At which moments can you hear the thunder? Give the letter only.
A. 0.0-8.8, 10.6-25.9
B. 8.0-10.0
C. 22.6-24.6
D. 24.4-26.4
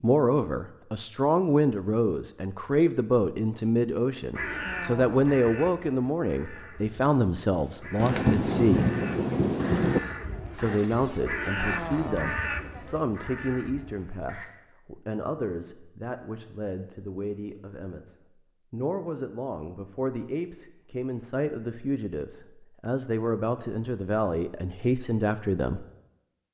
B.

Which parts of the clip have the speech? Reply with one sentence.
The speech can be heard from 0.0 to 8.8 s and from 10.6 to 25.9 s.